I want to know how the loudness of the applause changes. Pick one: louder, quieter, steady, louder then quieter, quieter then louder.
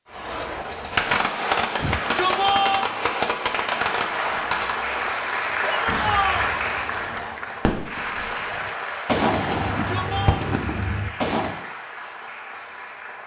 quieter.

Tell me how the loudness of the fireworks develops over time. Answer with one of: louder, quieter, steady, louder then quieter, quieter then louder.
quieter then louder.